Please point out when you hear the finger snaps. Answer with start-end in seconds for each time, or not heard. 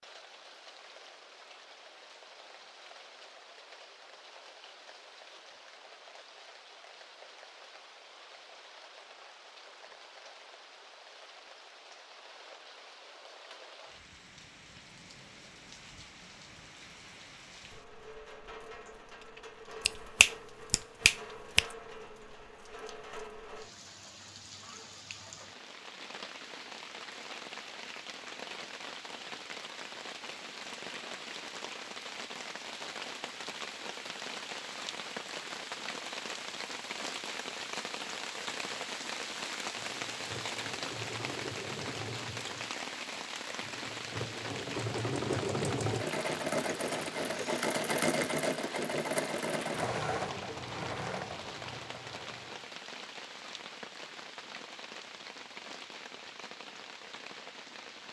19.9-21.6.